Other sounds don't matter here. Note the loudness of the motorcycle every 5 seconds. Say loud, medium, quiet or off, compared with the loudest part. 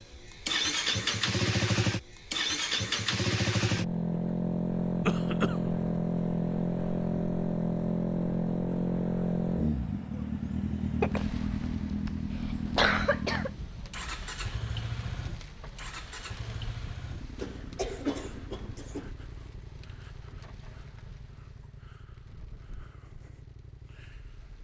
loud, loud, medium, quiet, quiet.